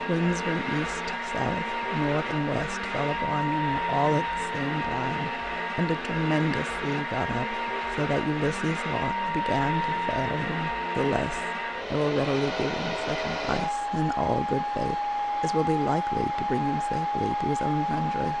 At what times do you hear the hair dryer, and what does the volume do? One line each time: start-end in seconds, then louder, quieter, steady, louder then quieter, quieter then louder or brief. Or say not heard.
0.0-18.3 steady.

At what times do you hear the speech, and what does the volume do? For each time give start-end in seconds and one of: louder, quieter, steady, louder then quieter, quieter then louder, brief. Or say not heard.
0.0-18.3 steady.